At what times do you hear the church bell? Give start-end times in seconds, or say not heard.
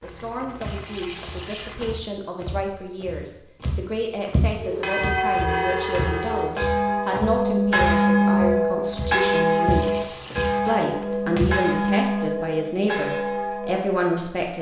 4.5-13.8.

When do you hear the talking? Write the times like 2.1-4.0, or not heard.
0.0-10.1, 10.7-14.5.